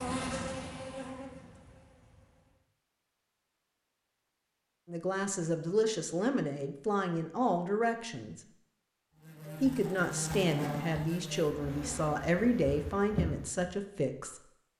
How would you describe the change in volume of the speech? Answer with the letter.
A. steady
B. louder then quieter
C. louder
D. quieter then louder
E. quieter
A.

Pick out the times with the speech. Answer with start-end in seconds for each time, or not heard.
4.8-8.4, 9.6-14.4.